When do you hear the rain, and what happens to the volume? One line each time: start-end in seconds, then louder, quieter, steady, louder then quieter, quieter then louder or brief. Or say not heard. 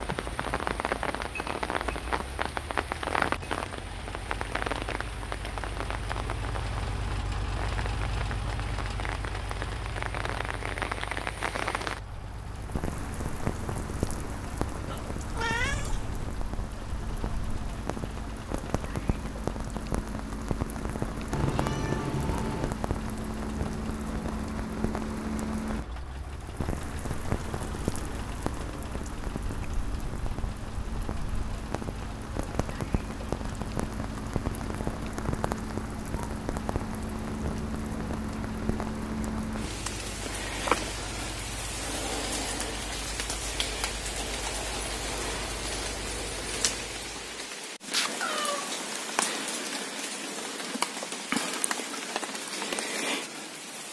0.0-53.8 steady.